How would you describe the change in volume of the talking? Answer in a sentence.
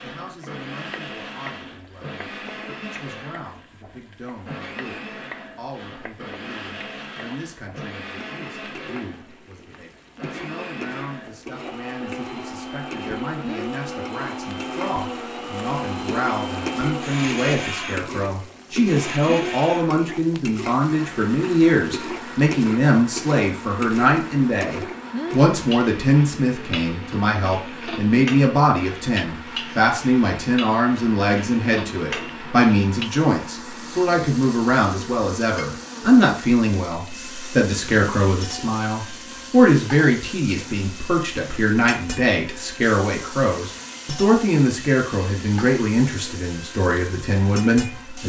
The loudness of the talking goes up.